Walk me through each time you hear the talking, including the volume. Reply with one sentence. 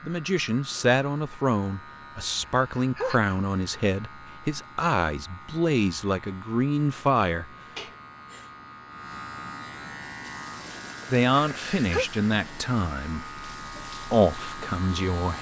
You can hear the talking from 0.0 to 7.5 s, at a steady volume; and from 11.1 to 15.3 s, getting quieter then louder.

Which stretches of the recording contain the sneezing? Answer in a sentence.
You can hear the sneezing from 2.5 to 3.4 s, from 7.8 to 8.5 s and from 11.3 to 12.1 s.